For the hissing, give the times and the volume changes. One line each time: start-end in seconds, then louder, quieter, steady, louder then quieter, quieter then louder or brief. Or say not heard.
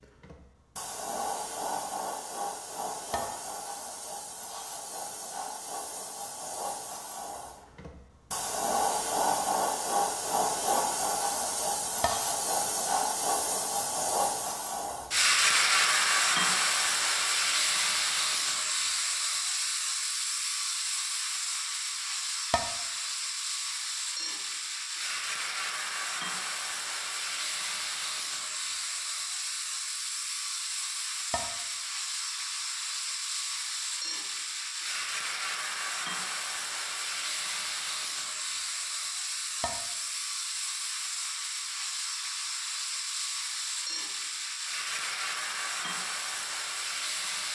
0.0-47.5 louder then quieter.